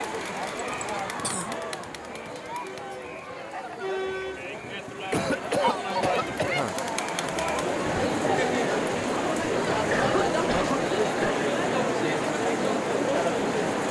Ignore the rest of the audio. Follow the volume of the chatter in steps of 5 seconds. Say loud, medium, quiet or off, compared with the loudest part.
medium, loud, loud.